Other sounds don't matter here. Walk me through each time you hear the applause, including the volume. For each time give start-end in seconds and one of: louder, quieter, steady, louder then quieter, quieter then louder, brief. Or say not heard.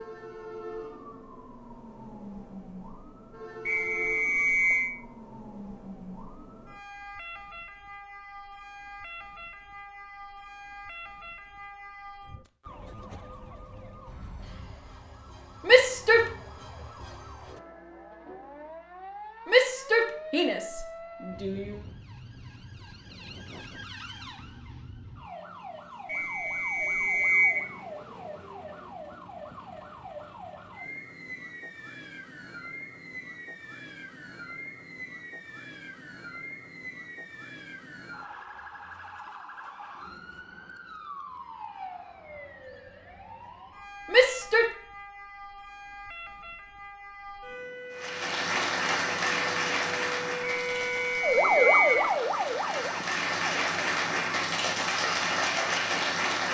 47.9-56.4 quieter then louder.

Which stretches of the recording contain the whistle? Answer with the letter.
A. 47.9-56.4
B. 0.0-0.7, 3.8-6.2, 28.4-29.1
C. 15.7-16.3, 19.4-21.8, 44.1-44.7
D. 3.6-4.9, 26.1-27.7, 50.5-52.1
D.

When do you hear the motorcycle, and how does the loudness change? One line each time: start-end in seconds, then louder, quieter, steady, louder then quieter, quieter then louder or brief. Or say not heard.
not heard.